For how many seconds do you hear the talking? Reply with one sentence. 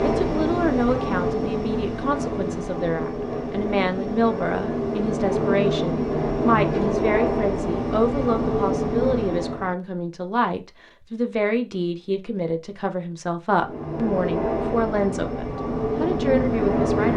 The talking can be heard for 17 seconds in total.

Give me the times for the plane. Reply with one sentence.
You can hear the plane from 0.0 to 9.8 s and from 13.5 to 17.1 s.